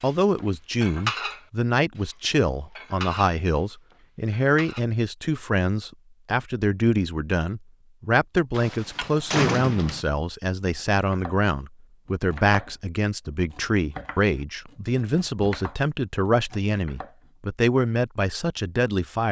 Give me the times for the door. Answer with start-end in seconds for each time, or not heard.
8.5-10.1.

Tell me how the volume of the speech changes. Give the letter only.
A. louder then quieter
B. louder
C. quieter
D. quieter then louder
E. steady
E.